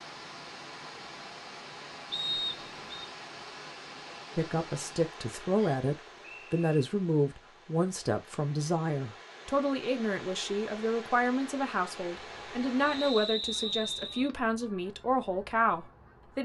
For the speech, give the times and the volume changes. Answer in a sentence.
The speech can be heard from 4.3 to 16.4 s, at a steady volume.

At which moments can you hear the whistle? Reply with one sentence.
You can hear the whistle from 2.1 to 3.0 s, from 5.5 to 6.8 s and from 12.8 to 14.3 s.